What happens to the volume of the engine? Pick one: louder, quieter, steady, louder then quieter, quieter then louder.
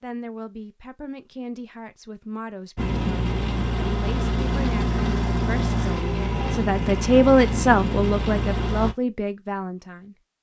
steady.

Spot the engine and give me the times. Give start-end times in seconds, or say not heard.
2.8-8.9.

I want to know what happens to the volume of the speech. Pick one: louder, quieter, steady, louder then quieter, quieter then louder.
louder then quieter.